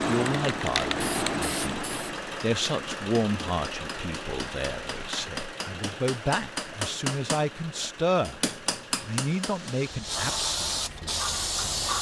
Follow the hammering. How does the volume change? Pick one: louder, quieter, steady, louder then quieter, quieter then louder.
louder.